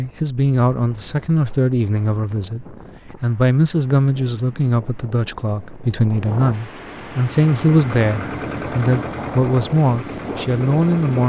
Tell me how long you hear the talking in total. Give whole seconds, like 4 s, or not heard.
11 s.